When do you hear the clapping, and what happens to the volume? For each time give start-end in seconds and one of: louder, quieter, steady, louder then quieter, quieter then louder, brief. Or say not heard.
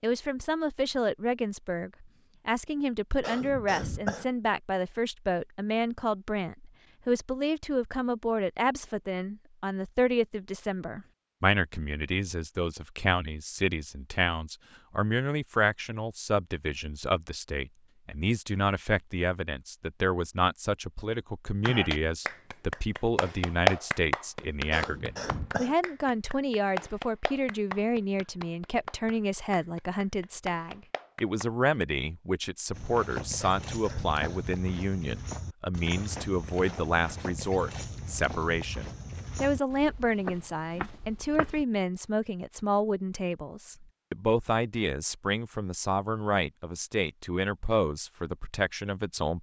21.6-31.5 quieter.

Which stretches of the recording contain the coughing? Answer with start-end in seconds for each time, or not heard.
3.2-4.3, 24.7-25.8, 33.4-34.2.